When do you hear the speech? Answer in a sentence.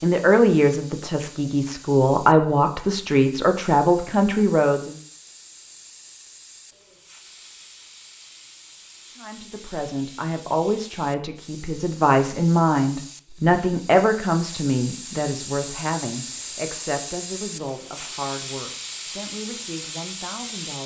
The speech can be heard from 0.0 to 5.0 s and from 9.2 to 20.8 s.